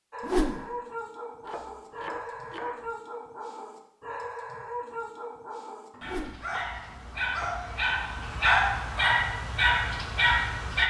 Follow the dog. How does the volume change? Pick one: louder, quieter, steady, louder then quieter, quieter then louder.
louder.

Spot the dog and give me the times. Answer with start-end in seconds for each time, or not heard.
0.1-10.8.